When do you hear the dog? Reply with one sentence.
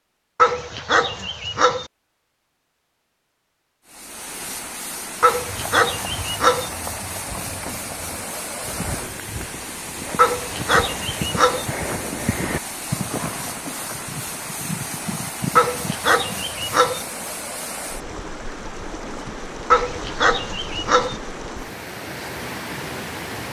The dog can be heard from 0.3 to 1.9 s, from 5.2 to 6.7 s, from 10.2 to 11.7 s, from 15.6 to 17.0 s and from 19.7 to 21.1 s.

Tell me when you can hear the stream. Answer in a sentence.
The stream can be heard from 3.9 to 23.4 s.